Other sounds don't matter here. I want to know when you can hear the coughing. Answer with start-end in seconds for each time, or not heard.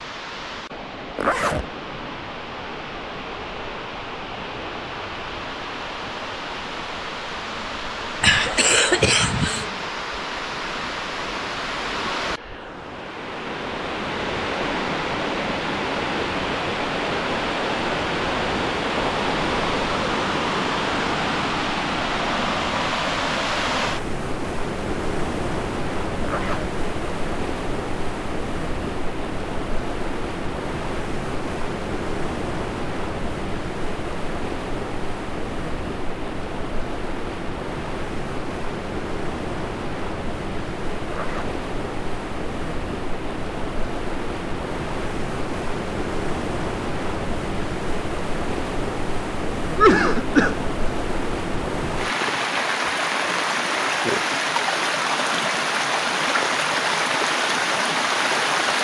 8.2-9.7, 49.8-50.6.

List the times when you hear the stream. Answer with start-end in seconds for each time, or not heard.
0.0-58.7.